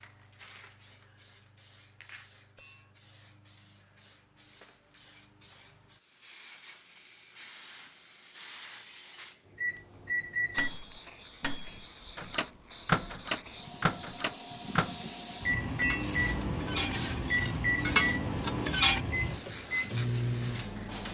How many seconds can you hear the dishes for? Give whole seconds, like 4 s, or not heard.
3 s.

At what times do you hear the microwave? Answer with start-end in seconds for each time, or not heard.
9.6-21.0.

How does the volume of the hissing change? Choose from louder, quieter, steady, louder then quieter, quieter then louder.
louder.